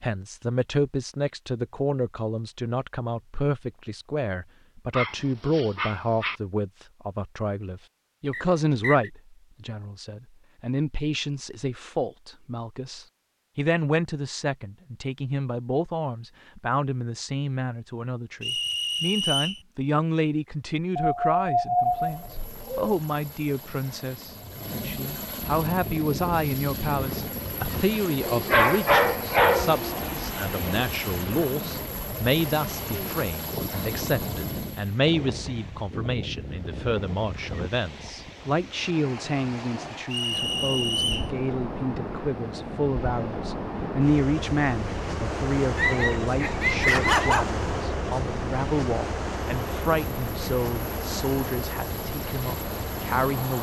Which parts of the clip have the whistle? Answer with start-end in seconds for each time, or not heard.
8.3-9.1, 18.4-19.6, 40.1-41.3.